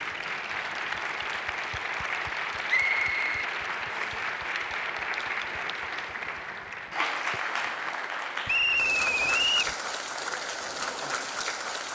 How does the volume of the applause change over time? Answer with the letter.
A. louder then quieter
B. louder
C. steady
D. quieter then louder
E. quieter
C.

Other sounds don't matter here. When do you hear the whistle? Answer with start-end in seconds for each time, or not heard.
2.6-4.2, 8.4-9.8.